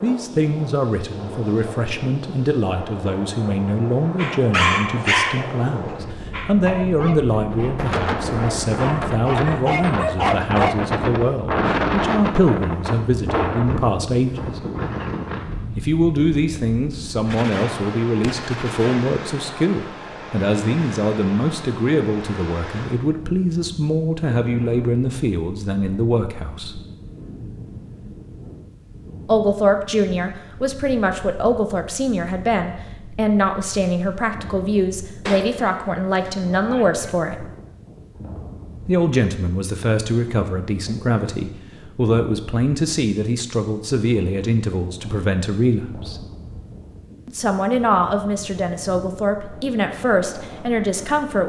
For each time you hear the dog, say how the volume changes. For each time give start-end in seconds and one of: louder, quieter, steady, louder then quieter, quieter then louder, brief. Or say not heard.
4.2-10.8 quieter then louder.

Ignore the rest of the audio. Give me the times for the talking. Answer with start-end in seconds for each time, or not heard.
0.0-14.6, 15.8-26.8, 29.2-37.5, 38.9-46.2, 47.2-51.4.